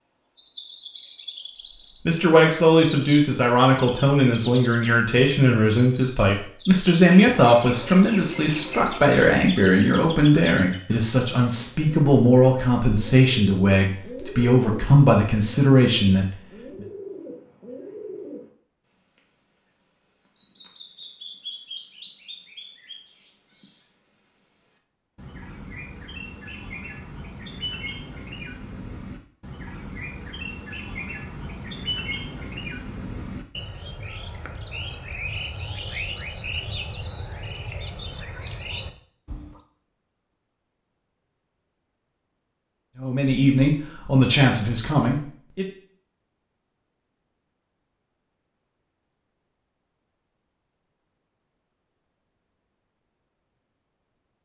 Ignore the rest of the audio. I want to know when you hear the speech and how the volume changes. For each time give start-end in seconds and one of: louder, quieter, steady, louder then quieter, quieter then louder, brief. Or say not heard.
2.0-16.4 steady
43.0-45.6 brief.